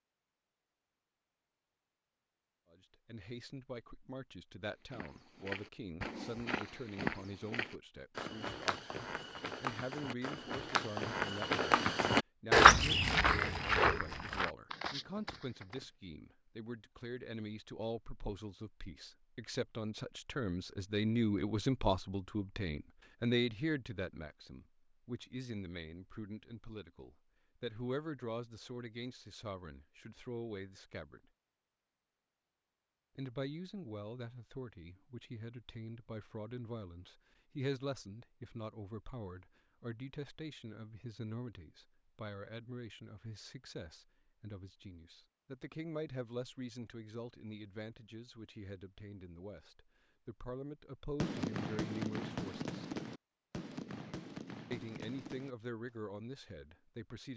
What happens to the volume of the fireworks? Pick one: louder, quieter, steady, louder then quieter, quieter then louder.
quieter.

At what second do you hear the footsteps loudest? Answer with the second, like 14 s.
13 s.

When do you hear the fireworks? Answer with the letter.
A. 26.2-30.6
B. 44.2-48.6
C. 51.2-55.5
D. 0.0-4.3
C.